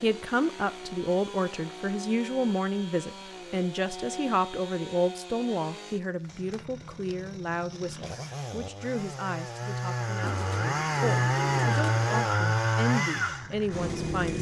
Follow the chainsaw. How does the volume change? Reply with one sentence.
The volume of the chainsaw goes up.